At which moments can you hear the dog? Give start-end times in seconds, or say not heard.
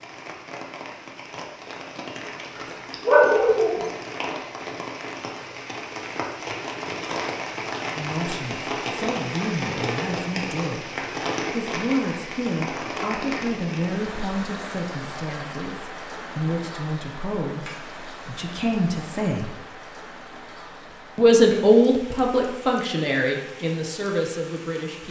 2.5-3.9.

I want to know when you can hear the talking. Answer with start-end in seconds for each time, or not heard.
8.0-19.6, 21.1-25.0.